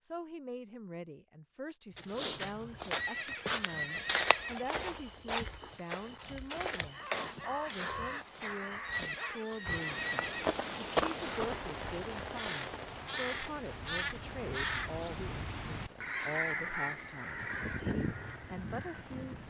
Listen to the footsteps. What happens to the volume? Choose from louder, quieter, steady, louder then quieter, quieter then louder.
quieter then louder.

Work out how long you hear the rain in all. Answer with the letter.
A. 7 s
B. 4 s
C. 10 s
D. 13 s
C.